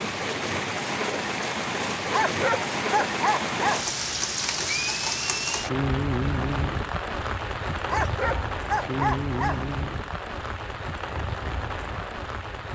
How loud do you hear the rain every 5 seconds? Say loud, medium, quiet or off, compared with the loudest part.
loud, loud, medium.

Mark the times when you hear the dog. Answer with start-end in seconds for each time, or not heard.
2.1-3.9, 7.8-9.7.